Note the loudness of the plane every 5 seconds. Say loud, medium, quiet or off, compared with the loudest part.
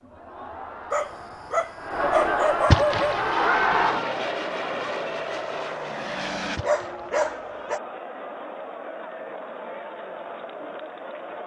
loud, loud, off.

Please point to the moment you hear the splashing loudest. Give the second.
3 s.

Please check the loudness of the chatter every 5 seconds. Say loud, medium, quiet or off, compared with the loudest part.
loud, medium, medium.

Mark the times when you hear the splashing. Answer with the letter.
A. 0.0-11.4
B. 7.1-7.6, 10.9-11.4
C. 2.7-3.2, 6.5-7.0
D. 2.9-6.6
C.